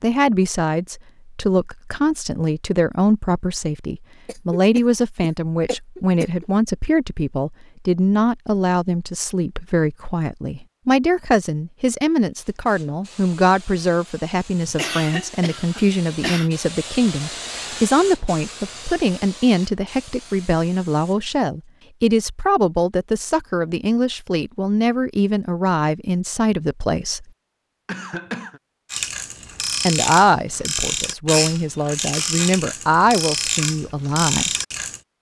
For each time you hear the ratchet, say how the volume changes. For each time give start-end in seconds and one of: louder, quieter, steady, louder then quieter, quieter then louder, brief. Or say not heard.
28.9-35.0 steady.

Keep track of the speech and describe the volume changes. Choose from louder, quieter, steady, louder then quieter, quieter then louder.
steady.